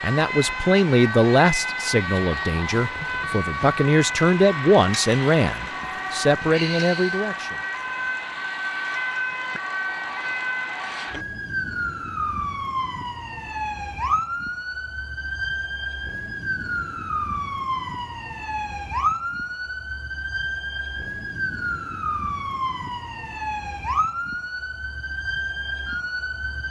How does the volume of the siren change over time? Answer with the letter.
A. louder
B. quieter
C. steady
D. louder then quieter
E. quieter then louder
C.